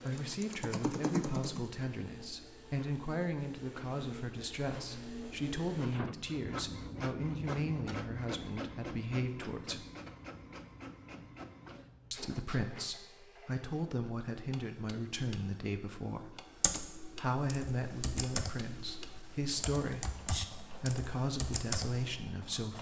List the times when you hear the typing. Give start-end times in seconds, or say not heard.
0.0-1.6, 16.4-22.1.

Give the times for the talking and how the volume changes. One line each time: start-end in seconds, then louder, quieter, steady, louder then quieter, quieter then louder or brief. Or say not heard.
0.0-9.8 steady
12.1-22.7 steady.